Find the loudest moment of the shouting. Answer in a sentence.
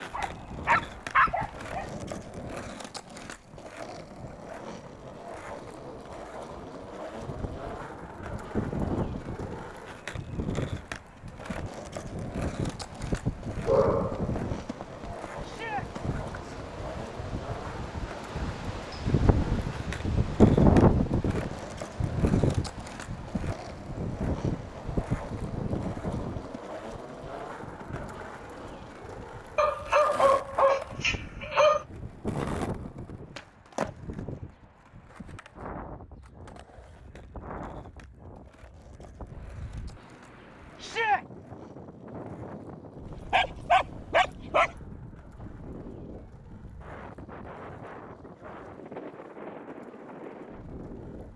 The volume of the shouting peaks at 41 seconds.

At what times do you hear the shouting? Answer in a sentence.
You can hear the shouting from 15.4 to 15.8 s and from 40.8 to 41.2 s.